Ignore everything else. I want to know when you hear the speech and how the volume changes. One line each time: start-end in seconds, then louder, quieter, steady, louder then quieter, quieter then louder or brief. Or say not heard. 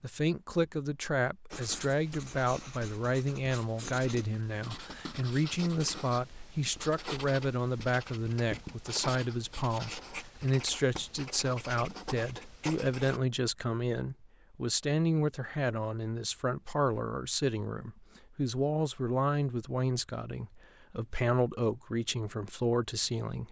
0.0-23.4 steady.